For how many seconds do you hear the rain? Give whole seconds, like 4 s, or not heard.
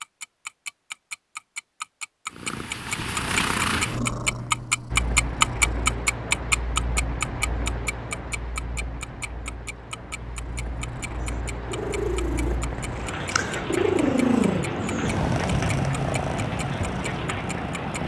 13 s.